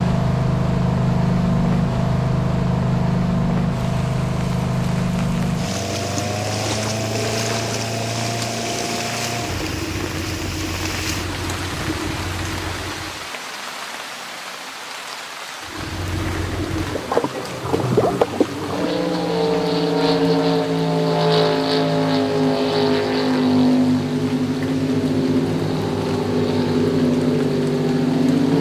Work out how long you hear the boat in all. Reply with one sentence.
You can hear the boat for 26 seconds altogether.